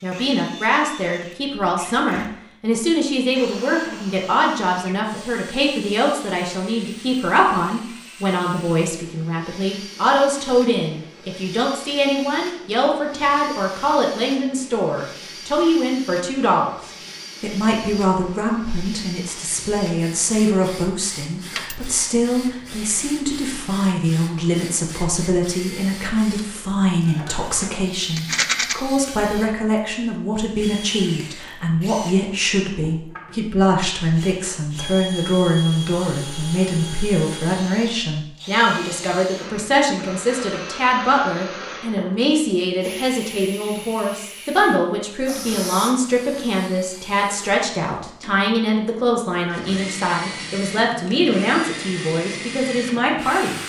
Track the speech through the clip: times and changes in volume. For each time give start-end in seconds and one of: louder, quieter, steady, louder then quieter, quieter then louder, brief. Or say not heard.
0.0-53.6 steady.